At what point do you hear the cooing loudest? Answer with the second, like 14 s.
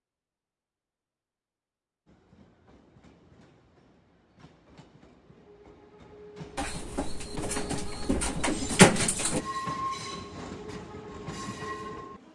9 s.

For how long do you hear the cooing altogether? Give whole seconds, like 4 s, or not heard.
3 s.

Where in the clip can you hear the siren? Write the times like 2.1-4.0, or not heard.
not heard.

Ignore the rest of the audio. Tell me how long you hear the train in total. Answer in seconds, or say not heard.
10 s.